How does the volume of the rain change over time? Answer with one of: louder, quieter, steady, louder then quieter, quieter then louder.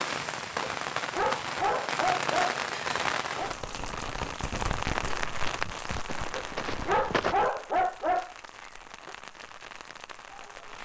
quieter.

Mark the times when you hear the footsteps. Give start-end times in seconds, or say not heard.
4.5-7.3.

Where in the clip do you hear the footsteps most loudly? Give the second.
7 s.